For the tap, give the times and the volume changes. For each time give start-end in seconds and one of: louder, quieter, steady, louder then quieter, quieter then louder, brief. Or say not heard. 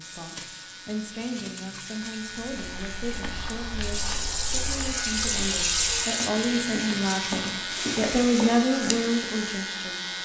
0.0-10.2 louder then quieter.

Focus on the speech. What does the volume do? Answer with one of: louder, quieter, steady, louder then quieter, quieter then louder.
louder.